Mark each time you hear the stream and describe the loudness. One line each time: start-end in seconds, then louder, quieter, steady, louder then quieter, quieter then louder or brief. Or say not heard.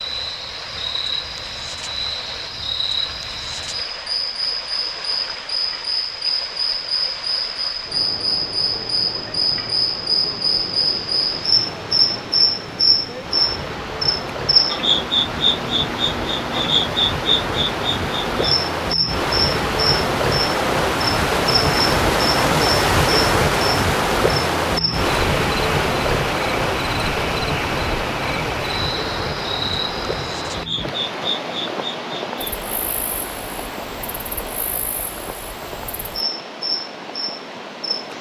0.0-38.1 louder then quieter.